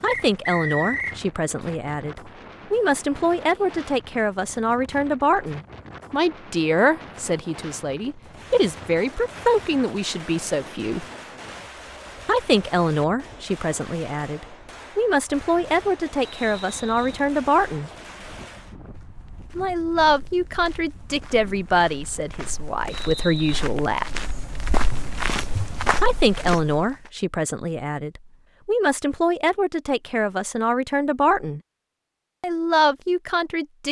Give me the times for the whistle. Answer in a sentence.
You can hear the whistle from 0.1 to 1.2 s, from 16.2 to 17.2 s and from 22.9 to 23.5 s.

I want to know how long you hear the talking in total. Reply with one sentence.
The talking can be heard for 28 seconds in total.